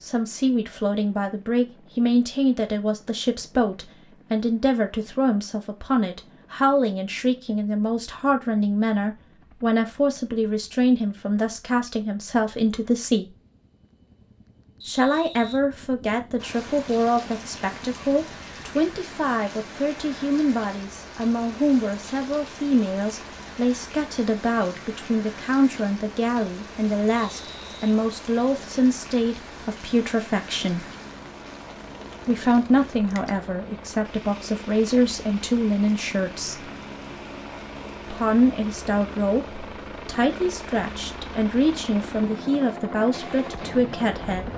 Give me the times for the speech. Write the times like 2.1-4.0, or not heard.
0.0-13.3, 14.8-30.9, 32.2-36.7, 38.1-44.5.